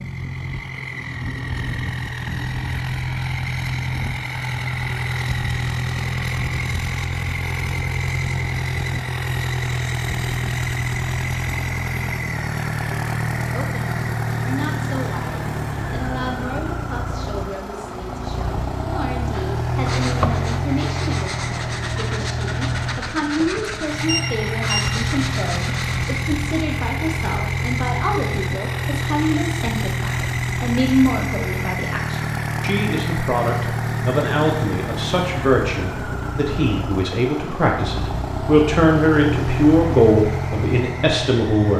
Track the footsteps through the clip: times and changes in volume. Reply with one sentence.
The footsteps can't be heard in this clip.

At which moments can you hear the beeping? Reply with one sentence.
You can hear the beeping from 24.1 to 24.9 s.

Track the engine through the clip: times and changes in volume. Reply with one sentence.
The engine can be heard from 0.0 to 41.7 s, at a steady volume.